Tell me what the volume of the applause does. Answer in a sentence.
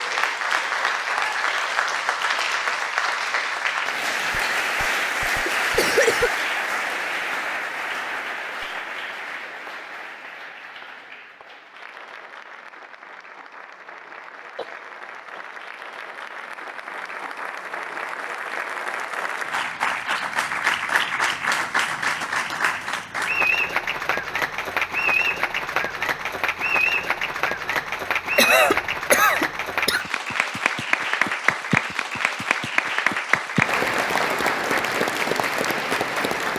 The volume of the applause goes down, then up.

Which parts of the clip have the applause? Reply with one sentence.
You can hear the applause from 0.0 to 36.5 s.